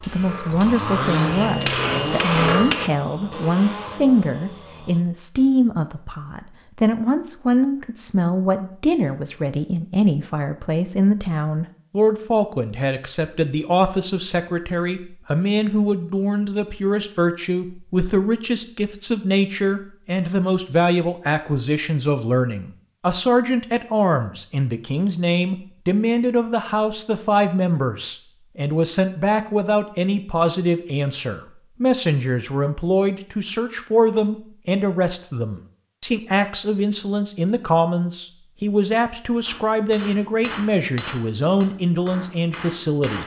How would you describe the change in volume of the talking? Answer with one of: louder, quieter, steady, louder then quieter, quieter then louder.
steady.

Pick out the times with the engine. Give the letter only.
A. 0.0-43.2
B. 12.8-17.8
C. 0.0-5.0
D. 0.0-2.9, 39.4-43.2
C.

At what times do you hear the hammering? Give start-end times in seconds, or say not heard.
0.0-2.9, 39.4-43.2.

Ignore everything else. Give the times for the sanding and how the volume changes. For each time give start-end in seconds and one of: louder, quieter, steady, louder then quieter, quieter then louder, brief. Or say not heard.
not heard.